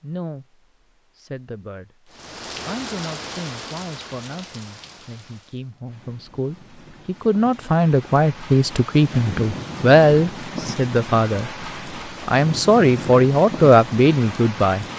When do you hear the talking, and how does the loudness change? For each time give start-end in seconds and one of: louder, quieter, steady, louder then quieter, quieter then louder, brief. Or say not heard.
0.0-11.5 louder
12.2-14.8 brief.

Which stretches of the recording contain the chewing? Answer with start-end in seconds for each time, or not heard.
not heard.